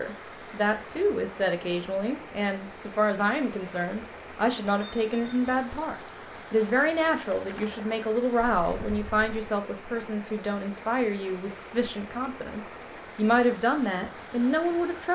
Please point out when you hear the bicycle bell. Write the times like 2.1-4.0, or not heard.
4.8-5.5, 8.4-9.6.